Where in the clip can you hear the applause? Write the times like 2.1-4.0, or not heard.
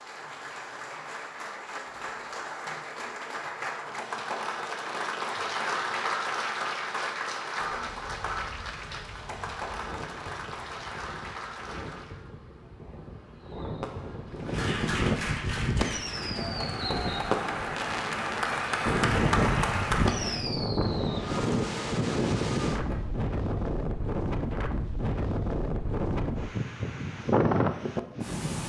0.0-12.3, 14.3-20.4.